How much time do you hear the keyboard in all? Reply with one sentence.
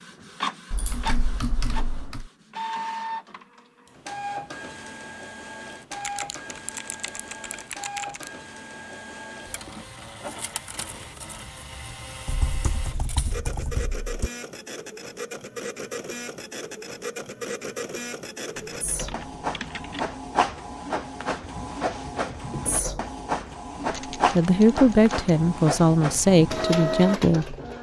You can hear the keyboard for 9 seconds altogether.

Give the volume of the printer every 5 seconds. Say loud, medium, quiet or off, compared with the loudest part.
medium, medium, medium, medium, loud, loud.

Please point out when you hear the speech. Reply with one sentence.
The speech can be heard from 24.3 to 27.6 s.